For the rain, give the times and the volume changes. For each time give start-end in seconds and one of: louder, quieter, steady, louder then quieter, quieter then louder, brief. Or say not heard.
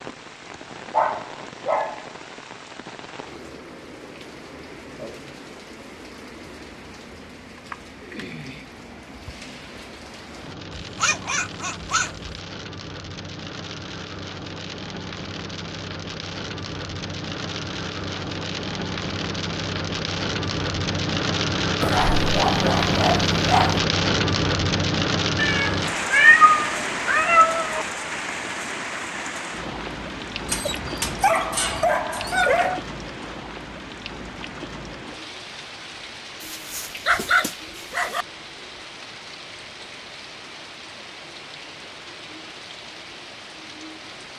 0.0-44.3 louder then quieter.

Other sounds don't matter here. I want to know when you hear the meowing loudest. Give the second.
26 s.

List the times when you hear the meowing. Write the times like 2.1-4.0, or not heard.
25.4-27.9.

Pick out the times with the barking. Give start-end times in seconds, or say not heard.
0.9-2.0, 10.7-12.4, 21.8-23.8, 30.4-32.9, 36.4-38.2.